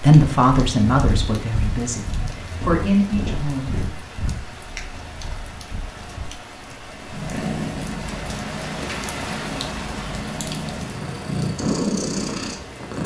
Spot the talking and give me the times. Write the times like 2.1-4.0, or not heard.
0.0-3.8.